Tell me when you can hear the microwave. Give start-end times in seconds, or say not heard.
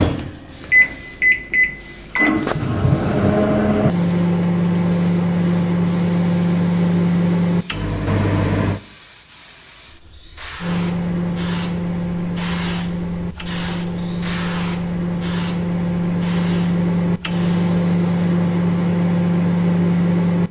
0.0-8.8, 10.6-20.4.